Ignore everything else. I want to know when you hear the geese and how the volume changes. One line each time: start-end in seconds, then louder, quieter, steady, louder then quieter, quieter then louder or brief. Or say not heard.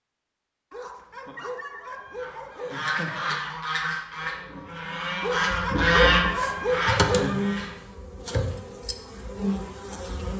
2.1-7.8 louder then quieter.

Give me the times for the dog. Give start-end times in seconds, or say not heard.
0.7-3.4, 5.2-7.4.